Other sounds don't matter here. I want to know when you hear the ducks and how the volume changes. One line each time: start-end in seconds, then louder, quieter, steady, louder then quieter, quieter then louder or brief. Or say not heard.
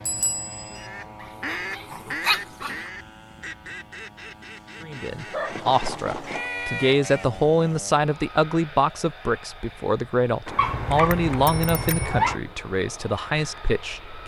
0.8-7.4 quieter then louder.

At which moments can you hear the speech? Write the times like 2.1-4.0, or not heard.
4.8-14.2.